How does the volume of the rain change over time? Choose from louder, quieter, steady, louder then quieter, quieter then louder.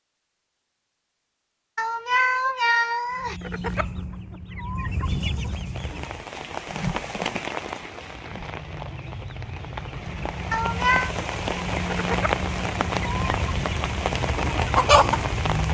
quieter then louder.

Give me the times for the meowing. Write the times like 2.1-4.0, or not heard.
1.8-3.4, 10.5-11.1.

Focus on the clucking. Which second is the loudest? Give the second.
15 s.